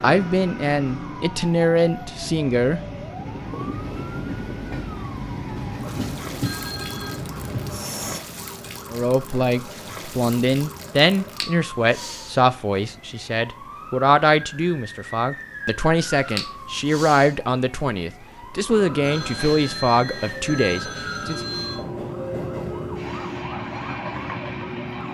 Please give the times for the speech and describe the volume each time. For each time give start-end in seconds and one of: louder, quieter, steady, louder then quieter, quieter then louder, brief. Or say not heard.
0.0-2.8 brief
8.9-21.4 steady.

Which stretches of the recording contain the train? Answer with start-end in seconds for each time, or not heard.
0.0-8.2, 18.6-25.0.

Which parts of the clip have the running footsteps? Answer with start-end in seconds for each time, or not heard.
not heard.